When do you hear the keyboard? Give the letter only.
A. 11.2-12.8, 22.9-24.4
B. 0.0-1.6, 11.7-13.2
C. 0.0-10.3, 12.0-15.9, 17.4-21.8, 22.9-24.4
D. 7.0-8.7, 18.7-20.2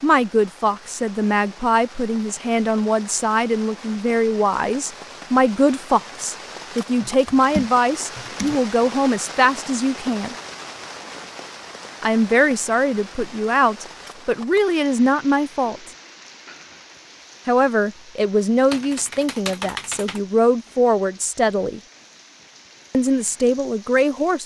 D.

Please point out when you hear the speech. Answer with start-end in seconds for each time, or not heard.
0.0-10.3, 12.0-15.9, 17.4-21.8, 22.9-24.4.